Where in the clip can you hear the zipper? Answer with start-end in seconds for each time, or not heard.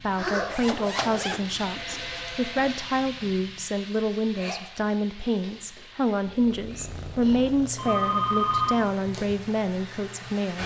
0.5-2.2.